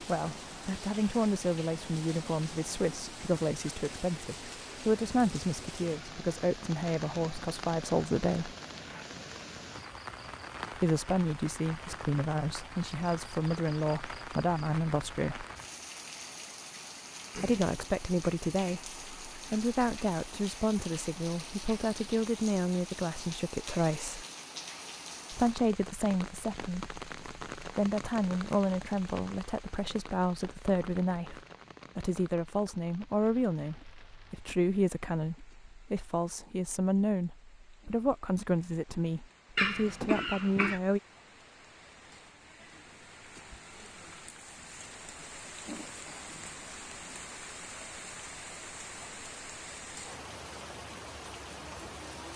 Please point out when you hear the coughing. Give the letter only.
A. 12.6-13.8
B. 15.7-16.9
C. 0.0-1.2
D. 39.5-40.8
D.